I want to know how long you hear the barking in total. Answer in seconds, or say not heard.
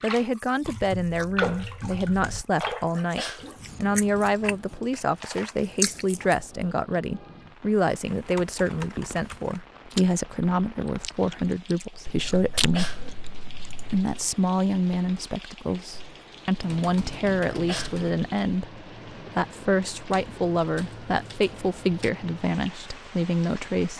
not heard.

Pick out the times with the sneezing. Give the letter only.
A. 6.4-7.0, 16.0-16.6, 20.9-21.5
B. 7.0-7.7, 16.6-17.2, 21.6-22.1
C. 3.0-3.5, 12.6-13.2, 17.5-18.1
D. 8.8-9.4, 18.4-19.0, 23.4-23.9
C.